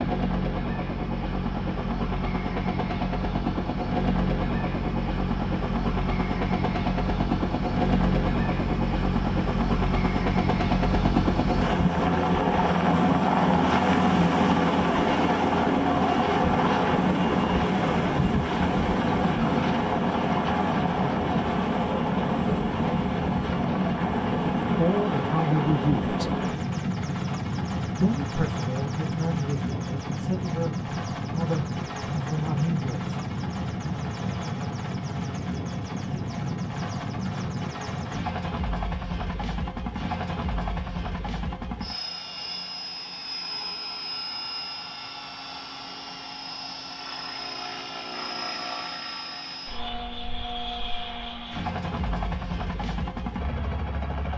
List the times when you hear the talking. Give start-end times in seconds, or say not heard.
24.2-26.2, 27.9-33.1.